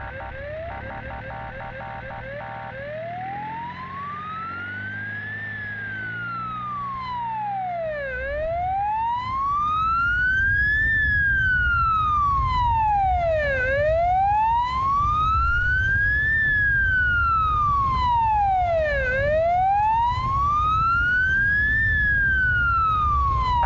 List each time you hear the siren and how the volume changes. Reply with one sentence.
You can hear the siren from 0.0 to 23.6 s, getting louder.